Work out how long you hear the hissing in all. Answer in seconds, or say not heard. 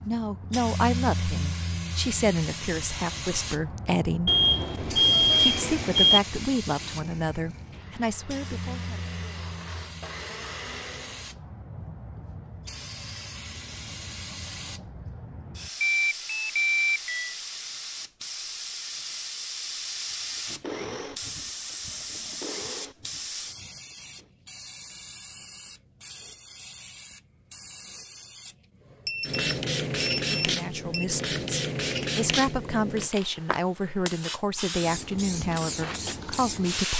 37 s.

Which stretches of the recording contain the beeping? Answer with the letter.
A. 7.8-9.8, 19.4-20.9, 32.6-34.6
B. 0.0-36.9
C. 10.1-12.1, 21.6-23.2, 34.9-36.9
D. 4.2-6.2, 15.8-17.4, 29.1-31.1
D.